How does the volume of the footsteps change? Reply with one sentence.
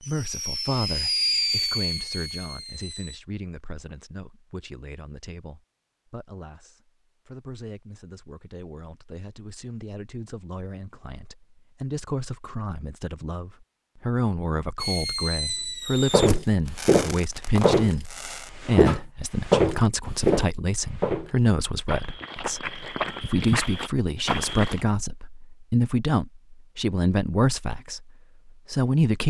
The volume of the footsteps goes down, then up.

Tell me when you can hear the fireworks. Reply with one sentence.
You can hear the fireworks from 0.0 to 3.2 s and from 14.8 to 18.5 s.